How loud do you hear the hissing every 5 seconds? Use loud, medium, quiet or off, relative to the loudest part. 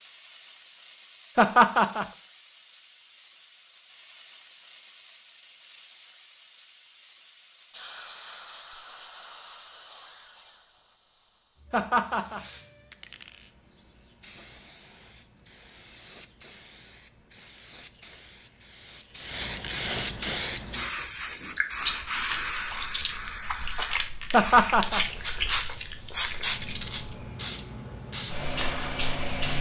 quiet, quiet, quiet, medium, loud, loud.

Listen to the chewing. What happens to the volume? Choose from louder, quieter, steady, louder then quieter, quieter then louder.
louder.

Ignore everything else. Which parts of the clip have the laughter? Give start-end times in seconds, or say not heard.
1.4-2.0, 11.7-12.4, 24.3-25.0.